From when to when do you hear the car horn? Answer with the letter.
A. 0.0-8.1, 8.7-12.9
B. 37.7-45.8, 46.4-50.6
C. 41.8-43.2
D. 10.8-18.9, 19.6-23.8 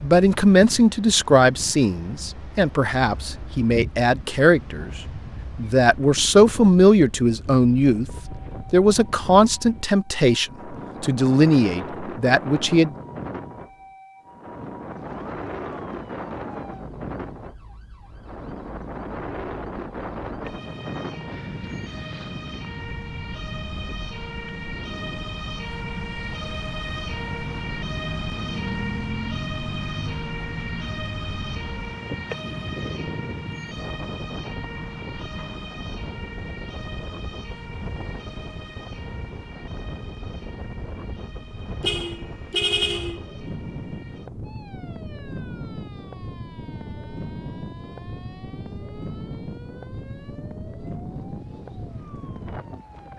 C.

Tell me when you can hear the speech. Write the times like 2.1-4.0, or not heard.
0.0-8.1, 8.7-12.9.